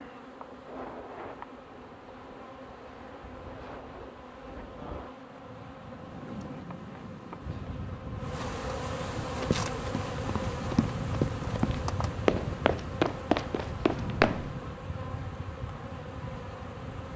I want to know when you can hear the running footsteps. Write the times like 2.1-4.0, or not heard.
9.2-14.5.